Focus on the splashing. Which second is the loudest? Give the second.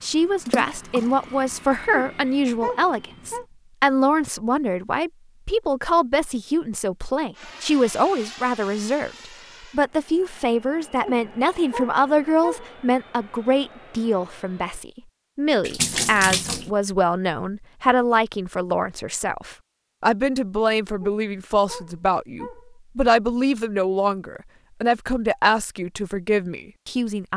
16 s.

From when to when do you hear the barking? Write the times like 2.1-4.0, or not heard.
1.9-3.5, 11.0-12.8, 21.0-22.7.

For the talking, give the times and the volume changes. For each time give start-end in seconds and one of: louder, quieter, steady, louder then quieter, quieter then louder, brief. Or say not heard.
0.0-9.1 steady
9.7-27.3 steady.